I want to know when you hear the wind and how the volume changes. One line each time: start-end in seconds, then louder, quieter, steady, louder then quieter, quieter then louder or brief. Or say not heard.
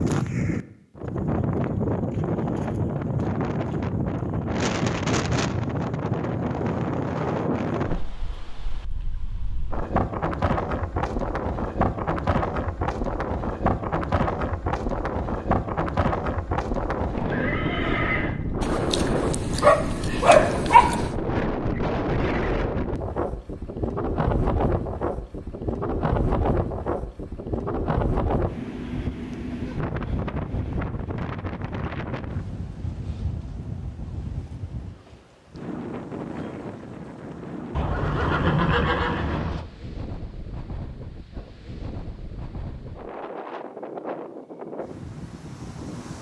0.0-46.1 quieter.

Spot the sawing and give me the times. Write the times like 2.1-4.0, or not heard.
not heard.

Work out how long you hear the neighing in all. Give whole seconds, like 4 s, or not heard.
3 s.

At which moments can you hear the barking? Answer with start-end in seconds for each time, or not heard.
18.6-21.1.